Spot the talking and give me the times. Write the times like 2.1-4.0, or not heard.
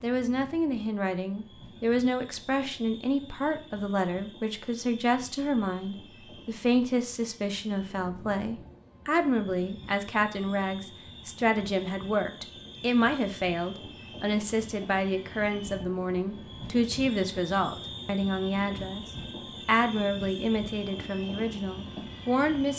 0.0-19.1, 19.6-22.7.